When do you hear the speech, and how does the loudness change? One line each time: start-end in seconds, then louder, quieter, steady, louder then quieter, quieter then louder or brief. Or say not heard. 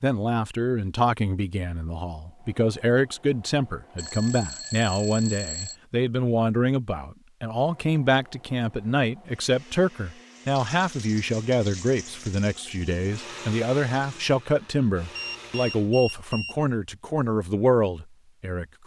0.0-18.8 steady.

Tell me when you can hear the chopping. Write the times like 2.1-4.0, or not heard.
not heard.